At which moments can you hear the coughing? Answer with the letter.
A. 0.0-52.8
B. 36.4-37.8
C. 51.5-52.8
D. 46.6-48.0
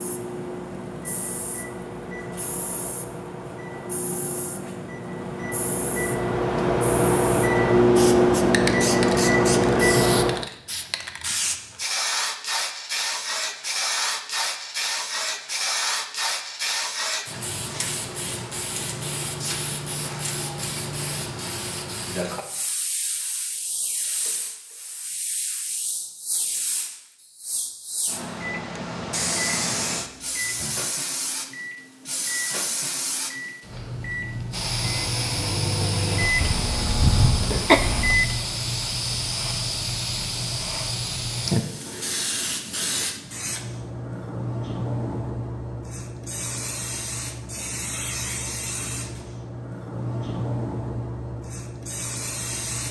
B.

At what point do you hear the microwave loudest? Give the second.
8 s.